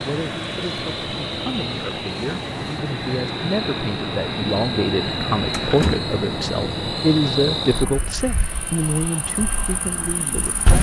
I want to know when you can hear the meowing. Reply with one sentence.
You can't hear the meowing here.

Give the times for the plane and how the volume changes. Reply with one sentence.
The plane can be heard from 0.0 to 10.7 s, getting quieter.